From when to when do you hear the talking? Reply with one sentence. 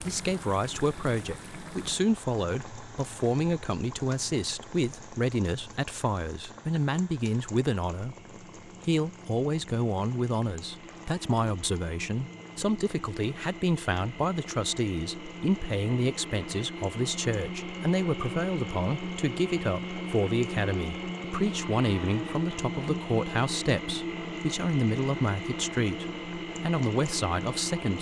You can hear the talking from 0.0 to 27.9 s.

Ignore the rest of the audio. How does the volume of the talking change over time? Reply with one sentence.
The loudness of the talking stays about the same.